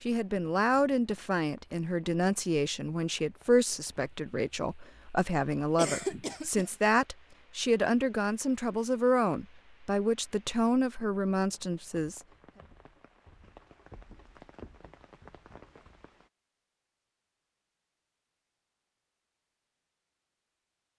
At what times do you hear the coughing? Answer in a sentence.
You can hear the coughing from 5.8 to 6.7 s.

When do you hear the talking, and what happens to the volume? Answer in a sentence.
You can hear the talking from 0.0 to 12.2 s, at a steady volume.